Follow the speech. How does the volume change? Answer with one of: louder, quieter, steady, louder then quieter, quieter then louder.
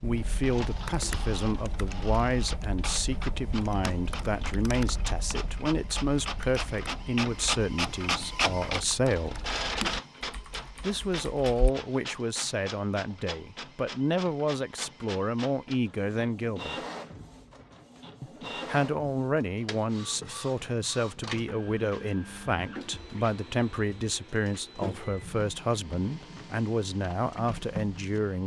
steady.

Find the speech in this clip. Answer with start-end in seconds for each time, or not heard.
0.0-9.4, 10.8-16.8, 18.2-28.4.